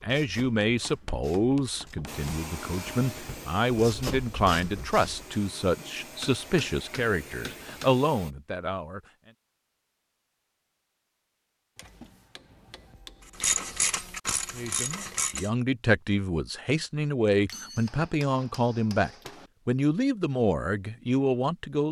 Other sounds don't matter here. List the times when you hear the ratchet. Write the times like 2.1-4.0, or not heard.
0.0-5.3, 13.3-15.5.